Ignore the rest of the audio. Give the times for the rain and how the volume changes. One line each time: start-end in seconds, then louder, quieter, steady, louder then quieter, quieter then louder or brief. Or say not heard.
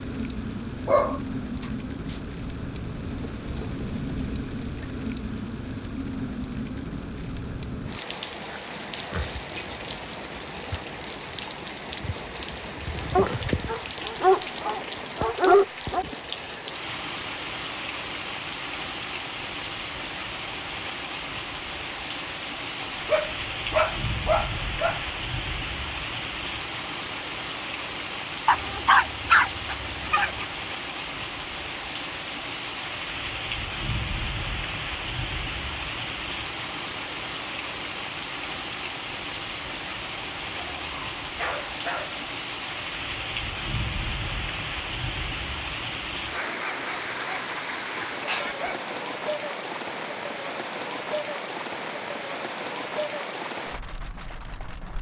0.0-54.9 steady.